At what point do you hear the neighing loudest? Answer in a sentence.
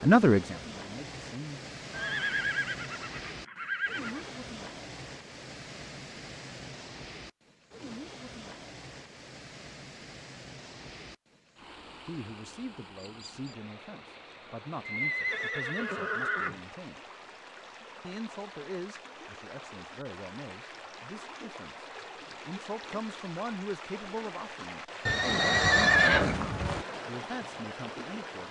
The volume of the neighing peaks at 26 seconds.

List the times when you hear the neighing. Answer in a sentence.
The neighing can be heard from 1.9 to 4.3 s, from 14.8 to 16.6 s and from 25.1 to 26.9 s.